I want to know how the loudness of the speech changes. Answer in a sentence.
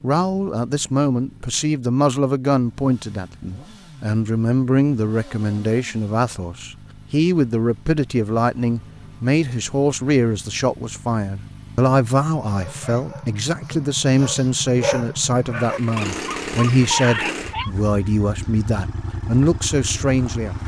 The loudness of the speech stays about the same.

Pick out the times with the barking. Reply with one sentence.
You can hear the barking from 12.4 to 17.7 s.